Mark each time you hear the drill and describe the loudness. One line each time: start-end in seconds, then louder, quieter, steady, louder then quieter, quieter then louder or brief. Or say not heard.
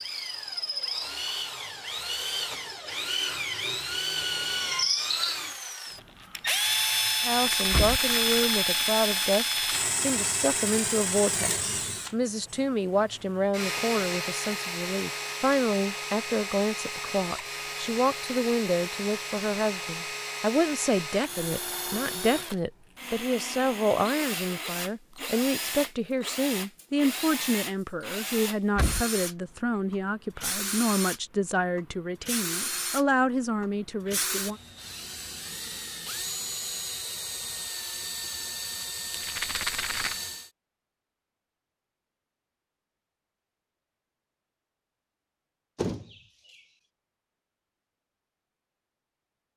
0.0-40.5 quieter.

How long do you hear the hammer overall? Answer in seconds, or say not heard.
not heard.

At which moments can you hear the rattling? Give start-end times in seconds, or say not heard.
7.3-9.9, 39.1-40.2.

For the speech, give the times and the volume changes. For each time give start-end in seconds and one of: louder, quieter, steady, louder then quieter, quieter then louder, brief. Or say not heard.
7.2-34.5 steady.